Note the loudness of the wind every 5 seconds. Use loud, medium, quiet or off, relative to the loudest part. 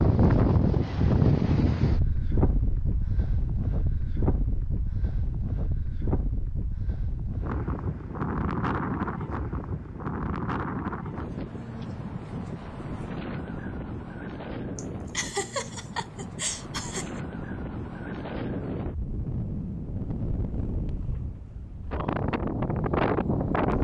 loud, medium, medium, medium, loud.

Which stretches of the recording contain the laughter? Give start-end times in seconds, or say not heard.
14.8-17.2.